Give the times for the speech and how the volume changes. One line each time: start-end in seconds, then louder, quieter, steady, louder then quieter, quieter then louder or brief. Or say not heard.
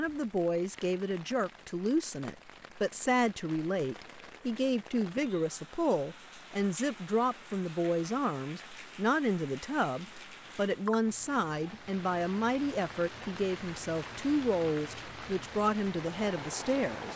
0.0-17.1 steady.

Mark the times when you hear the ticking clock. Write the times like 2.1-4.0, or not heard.
not heard.